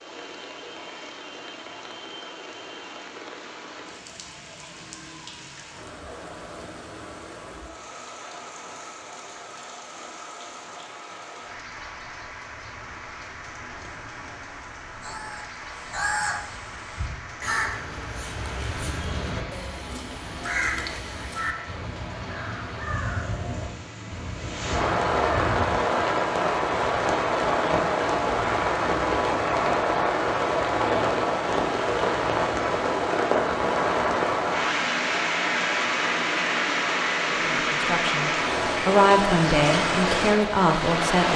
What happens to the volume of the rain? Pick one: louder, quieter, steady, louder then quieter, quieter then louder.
louder.